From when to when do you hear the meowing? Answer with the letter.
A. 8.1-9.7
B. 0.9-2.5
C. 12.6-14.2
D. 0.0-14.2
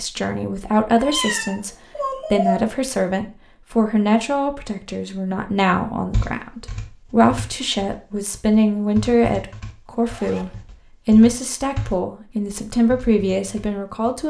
B.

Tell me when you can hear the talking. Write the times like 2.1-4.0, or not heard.
0.0-14.2.